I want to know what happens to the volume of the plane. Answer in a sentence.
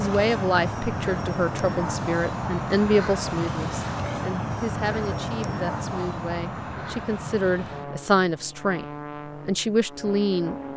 The volume of the plane goes down.